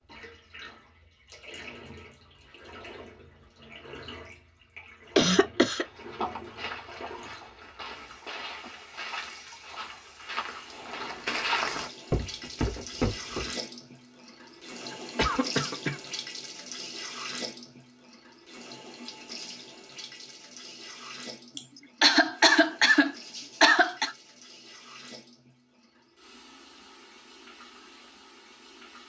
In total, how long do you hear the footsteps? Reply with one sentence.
The footsteps can be heard for 8 seconds in total.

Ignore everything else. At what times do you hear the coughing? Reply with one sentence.
The coughing can be heard from 5.2 to 5.8 s, from 14.9 to 16.0 s and from 21.6 to 24.1 s.